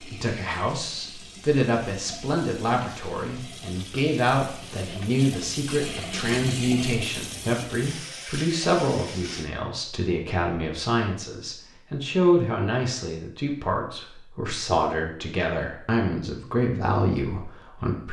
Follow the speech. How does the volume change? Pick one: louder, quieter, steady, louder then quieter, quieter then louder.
steady.